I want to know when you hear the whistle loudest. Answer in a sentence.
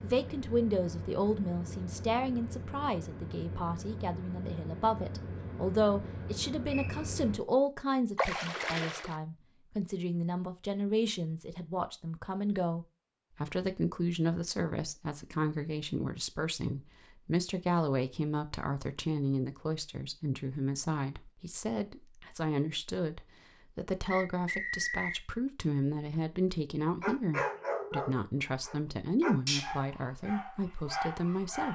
The volume of the whistle peaks at 25 seconds.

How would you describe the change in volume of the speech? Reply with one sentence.
The loudness of the speech stays about the same.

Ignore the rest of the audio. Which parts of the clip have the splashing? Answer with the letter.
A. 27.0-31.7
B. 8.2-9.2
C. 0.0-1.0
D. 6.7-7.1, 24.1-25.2
B.